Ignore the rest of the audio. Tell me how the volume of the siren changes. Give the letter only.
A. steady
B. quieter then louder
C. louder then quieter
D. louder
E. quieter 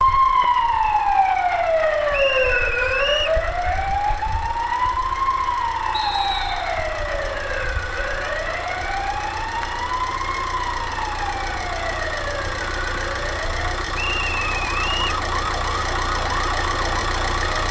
E.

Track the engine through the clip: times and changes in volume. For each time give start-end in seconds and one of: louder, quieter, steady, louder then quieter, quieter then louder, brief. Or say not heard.
0.0-17.6 louder.